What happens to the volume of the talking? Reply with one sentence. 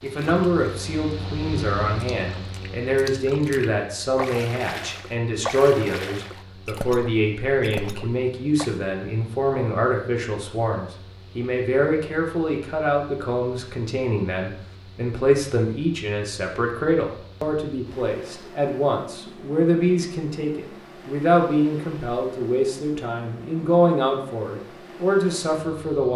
The loudness of the talking stays about the same.